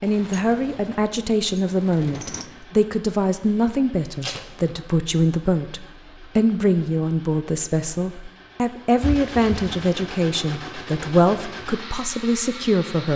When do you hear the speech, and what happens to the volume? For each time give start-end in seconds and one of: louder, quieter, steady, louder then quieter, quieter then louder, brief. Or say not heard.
0.0-13.1 steady.